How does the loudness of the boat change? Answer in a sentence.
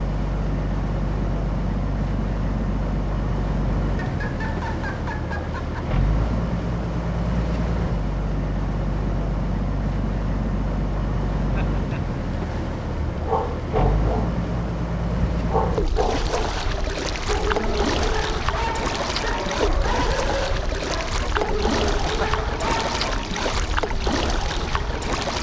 The loudness of the boat stays about the same.